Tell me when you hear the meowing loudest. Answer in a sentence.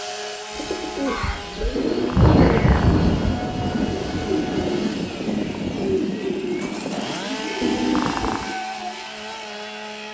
The volume of the meowing peaks at 8 seconds.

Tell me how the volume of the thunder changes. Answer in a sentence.
The volume of the thunder goes down.